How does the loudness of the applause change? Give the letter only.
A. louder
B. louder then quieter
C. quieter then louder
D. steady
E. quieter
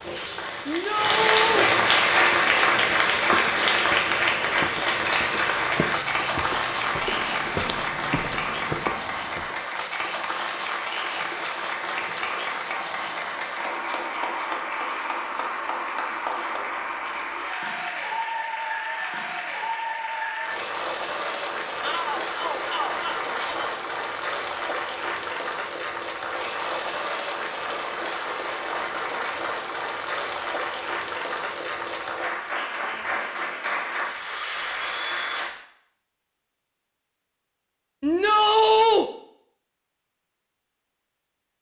E.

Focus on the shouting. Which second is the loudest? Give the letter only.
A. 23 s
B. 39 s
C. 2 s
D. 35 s
B.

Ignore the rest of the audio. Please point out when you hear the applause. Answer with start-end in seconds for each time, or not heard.
0.0-35.5.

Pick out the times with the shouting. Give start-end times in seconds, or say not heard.
0.7-1.7, 21.8-23.7, 38.0-39.0.